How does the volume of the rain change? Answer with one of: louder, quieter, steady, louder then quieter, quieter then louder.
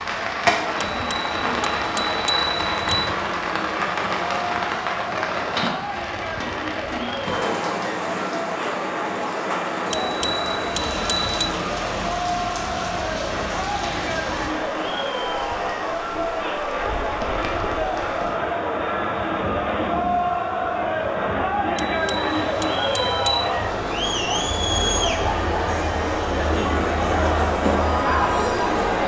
quieter.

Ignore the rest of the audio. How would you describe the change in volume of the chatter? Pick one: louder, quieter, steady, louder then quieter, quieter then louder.
louder.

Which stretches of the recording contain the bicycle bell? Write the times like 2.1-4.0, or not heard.
0.8-3.1, 9.9-11.2, 21.8-23.5.